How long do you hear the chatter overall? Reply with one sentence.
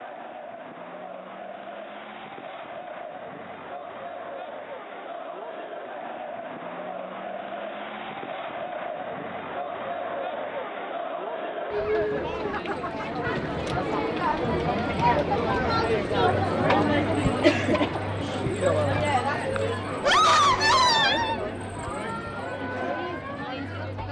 The chatter can be heard for 24 seconds in total.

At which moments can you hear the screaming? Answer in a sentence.
The screaming can be heard from 20.0 to 21.4 s.